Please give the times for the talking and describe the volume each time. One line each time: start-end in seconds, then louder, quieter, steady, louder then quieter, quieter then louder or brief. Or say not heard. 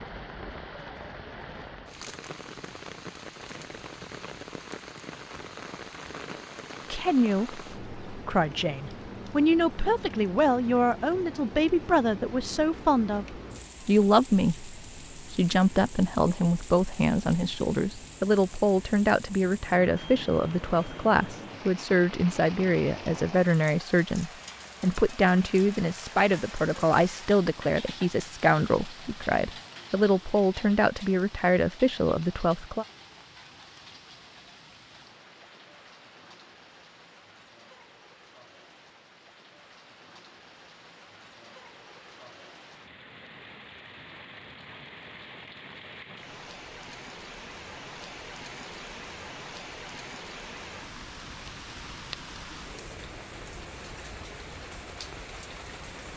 6.9-32.9 steady.